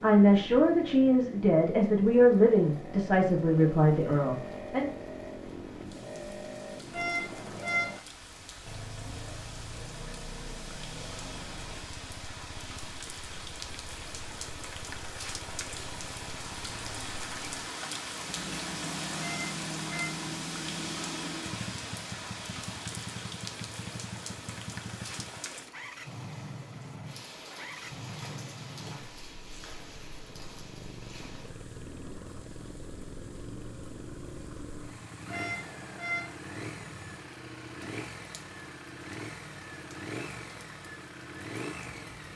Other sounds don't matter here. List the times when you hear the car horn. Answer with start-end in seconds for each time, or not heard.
6.9-8.0, 19.1-20.1, 35.2-36.4.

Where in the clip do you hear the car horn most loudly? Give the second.
8 s.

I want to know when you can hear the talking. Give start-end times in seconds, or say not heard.
0.0-4.9.